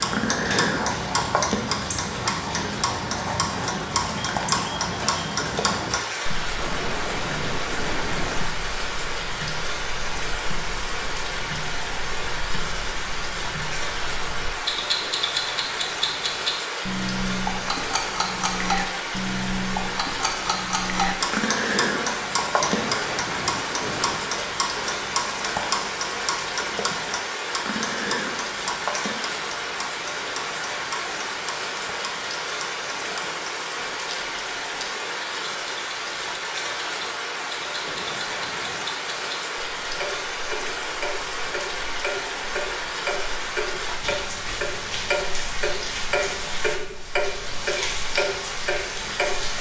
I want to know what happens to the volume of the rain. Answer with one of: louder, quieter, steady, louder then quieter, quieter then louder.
steady.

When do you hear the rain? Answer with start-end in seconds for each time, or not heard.
0.0-49.5.